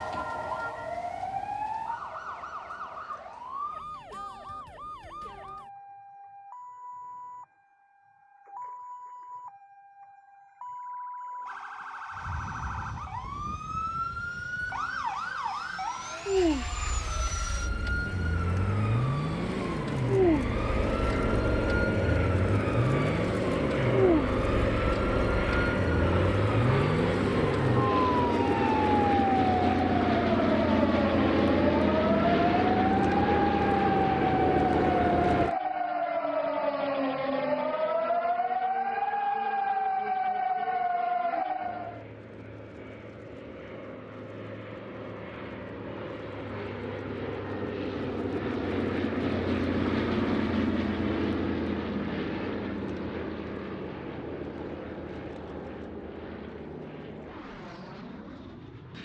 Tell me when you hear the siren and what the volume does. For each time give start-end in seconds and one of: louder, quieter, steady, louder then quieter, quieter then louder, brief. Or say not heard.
0.0-42.0 louder.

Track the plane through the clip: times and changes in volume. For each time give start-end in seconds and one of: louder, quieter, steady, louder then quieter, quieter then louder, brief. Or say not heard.
12.1-35.5 louder
41.5-58.9 louder then quieter.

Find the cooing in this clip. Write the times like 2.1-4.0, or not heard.
not heard.